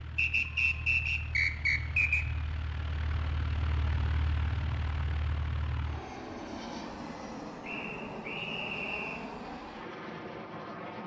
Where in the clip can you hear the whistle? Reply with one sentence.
The whistle can be heard from 0.1 to 2.2 s and from 7.6 to 9.3 s.